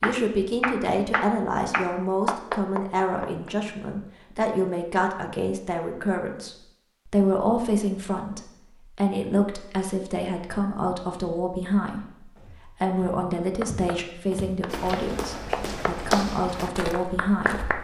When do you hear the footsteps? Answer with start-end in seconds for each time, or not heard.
12.3-17.7.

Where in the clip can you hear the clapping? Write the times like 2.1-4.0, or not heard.
0.0-3.5, 13.6-17.7.